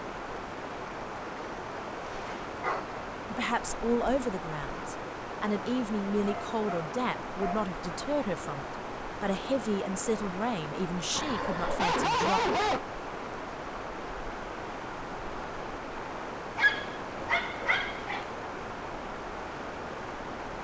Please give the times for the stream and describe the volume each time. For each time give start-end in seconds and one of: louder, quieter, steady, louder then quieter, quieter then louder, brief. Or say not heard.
0.0-20.5 steady.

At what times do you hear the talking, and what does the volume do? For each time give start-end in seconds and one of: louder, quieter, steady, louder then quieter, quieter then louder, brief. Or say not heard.
3.3-12.4 steady.